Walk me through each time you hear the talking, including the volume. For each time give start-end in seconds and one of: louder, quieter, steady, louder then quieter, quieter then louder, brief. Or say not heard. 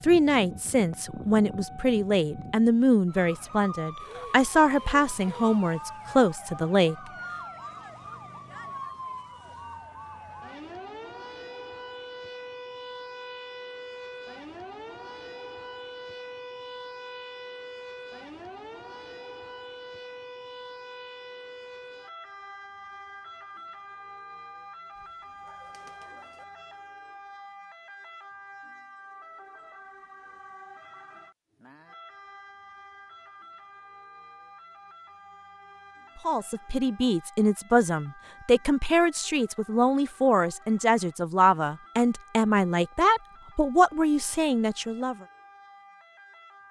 0.0-7.0 steady
36.2-45.1 steady.